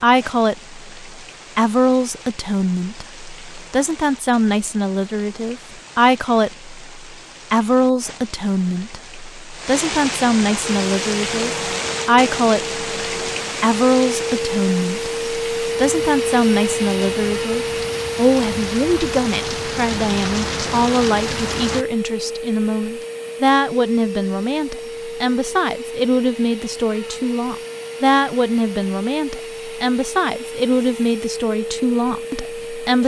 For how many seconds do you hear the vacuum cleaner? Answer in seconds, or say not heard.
22 s.